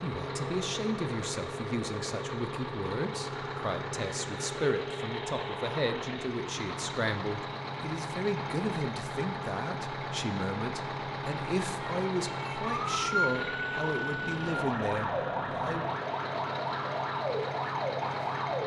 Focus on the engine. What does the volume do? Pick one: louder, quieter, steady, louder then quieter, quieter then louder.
steady.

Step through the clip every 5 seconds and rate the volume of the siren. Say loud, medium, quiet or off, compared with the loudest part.
off, off, loud, loud.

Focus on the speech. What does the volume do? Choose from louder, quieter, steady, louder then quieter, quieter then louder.
steady.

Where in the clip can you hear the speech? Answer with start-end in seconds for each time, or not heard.
0.0-15.9.